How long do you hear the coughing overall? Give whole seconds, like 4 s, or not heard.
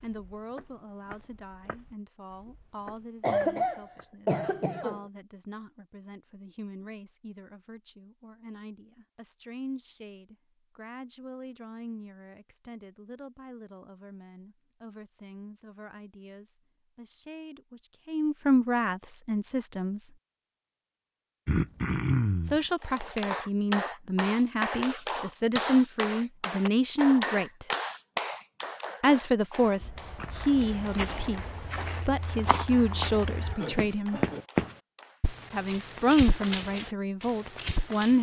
5 s.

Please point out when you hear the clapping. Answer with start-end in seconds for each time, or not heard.
22.8-35.2.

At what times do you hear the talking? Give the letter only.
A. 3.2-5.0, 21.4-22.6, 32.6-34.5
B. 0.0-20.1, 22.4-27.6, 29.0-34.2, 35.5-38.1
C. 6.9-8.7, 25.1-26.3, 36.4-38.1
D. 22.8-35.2
B.